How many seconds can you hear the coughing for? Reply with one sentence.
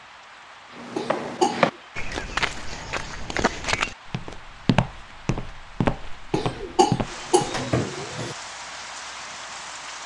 You can hear the coughing for 3 seconds altogether.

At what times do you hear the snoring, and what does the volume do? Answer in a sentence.
The snoring can't be heard in this clip.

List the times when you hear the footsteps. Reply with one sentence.
You can hear the footsteps from 0.8 to 7.7 s.